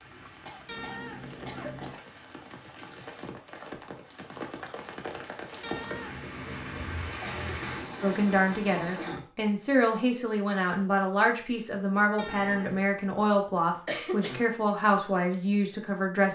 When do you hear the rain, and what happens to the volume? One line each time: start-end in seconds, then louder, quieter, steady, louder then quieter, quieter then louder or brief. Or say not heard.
0.0-9.2 louder.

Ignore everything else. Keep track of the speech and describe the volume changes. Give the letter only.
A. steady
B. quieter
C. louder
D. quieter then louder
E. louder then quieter
A.